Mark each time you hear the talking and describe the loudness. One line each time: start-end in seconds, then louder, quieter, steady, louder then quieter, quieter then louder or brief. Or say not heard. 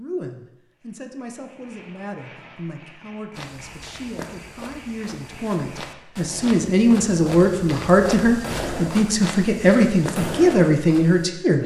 0.0-11.6 louder.